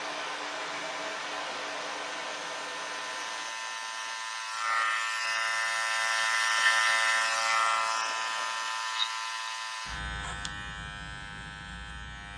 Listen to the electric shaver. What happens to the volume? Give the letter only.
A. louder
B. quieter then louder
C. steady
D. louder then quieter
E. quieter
D.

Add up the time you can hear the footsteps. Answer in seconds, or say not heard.
not heard.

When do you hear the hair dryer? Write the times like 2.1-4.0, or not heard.
0.0-3.5.